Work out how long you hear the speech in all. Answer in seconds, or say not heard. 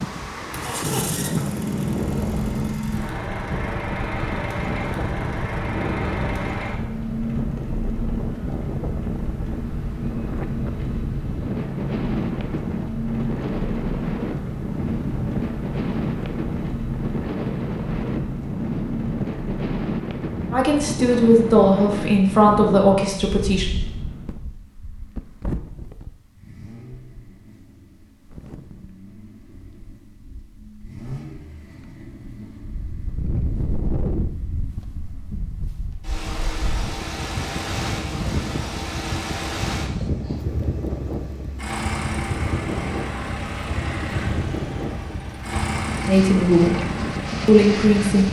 5 s.